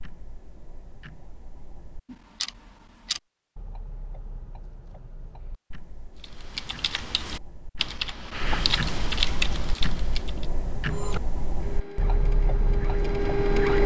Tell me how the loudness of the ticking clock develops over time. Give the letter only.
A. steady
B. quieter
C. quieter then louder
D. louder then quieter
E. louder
C.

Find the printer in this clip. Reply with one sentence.
The printer can be heard from 10.8 to 13.8 s.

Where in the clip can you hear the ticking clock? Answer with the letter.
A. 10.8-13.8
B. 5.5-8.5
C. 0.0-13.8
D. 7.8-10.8
C.